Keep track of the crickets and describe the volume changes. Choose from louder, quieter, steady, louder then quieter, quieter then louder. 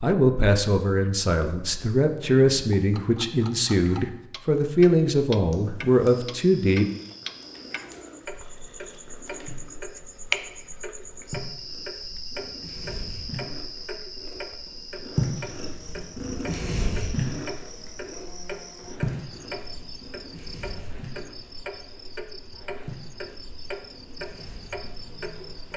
quieter.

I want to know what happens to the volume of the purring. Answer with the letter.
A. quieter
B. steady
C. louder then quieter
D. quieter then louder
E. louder
C.